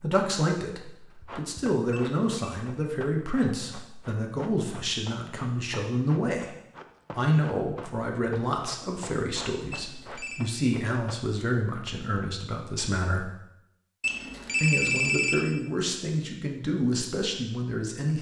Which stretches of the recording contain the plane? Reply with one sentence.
The plane can't be heard in this clip.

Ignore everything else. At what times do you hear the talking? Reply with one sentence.
The talking can be heard from 0.0 to 6.5 s, from 7.2 to 13.3 s and from 14.6 to 18.1 s.